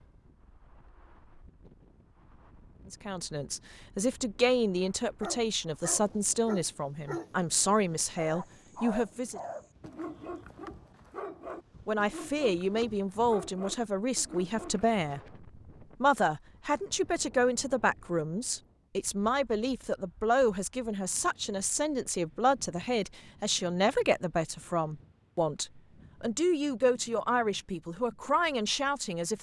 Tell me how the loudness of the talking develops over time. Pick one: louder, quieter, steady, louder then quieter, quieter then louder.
steady.